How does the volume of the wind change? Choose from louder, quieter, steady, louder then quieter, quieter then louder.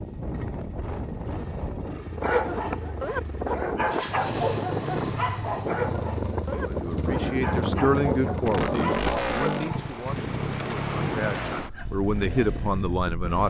steady.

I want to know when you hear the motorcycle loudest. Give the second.
9 s.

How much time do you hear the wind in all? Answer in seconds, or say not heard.
13 s.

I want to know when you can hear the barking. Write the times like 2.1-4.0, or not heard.
2.2-9.9.